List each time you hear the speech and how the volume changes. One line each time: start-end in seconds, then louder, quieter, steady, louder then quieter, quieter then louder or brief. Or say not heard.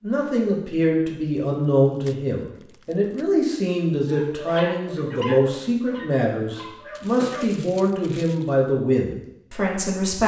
0.0-10.2 steady.